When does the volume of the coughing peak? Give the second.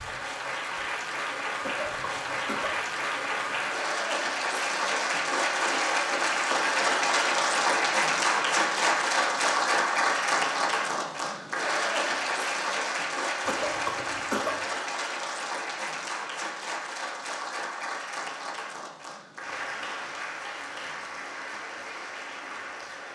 14 s.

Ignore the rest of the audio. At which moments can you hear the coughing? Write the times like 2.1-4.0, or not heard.
1.6-2.8, 13.4-14.6.